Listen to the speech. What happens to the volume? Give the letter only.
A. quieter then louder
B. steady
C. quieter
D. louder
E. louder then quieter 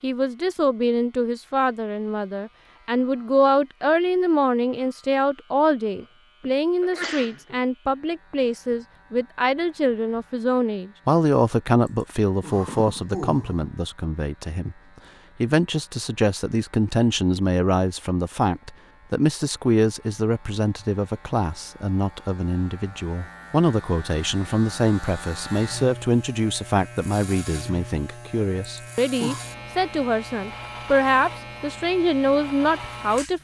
B.